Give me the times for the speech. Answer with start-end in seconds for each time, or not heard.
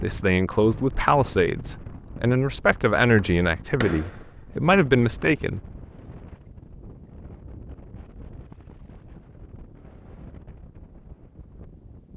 0.0-5.6.